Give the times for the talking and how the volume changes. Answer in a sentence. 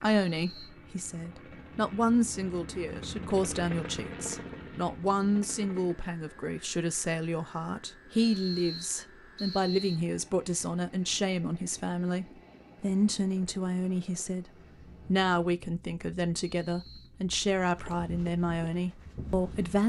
You can hear the talking from 0.0 to 19.8 s, at a steady volume.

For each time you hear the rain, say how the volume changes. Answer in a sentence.
You can't hear the rain here.